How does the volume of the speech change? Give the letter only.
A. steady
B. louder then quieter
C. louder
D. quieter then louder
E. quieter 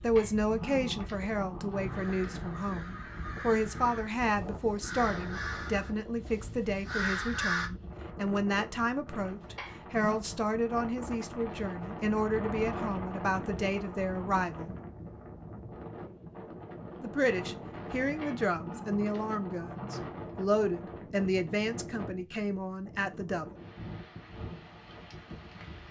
A.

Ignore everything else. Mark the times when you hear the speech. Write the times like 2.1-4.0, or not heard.
0.0-14.8, 17.0-23.6.